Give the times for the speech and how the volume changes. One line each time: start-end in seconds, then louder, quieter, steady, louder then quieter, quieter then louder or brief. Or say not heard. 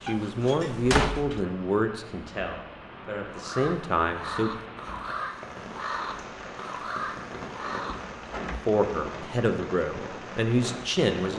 0.0-4.5 quieter then louder
8.7-11.3 brief.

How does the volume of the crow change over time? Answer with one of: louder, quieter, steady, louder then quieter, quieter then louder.
steady.